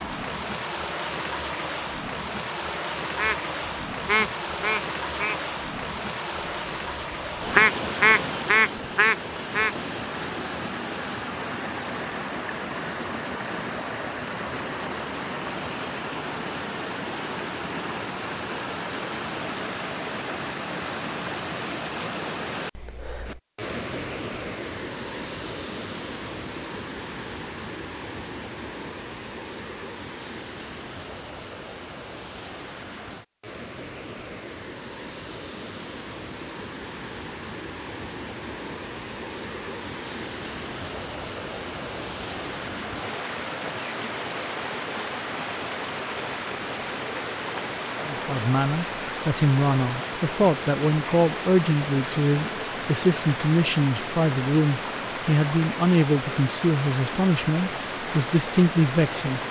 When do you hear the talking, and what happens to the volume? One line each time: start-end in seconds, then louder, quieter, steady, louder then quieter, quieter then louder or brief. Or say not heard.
48.0-59.4 steady.